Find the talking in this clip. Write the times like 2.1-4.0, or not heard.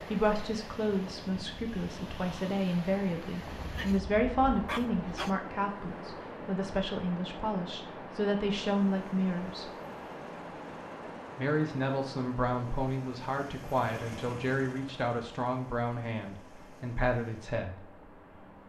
0.0-9.8, 11.3-17.8.